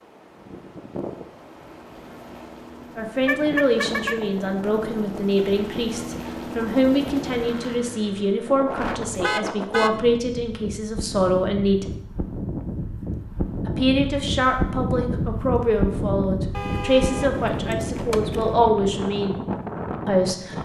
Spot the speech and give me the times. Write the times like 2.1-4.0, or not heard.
3.0-11.9, 13.7-19.4, 20.1-20.6.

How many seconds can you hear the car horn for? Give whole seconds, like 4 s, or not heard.
4 s.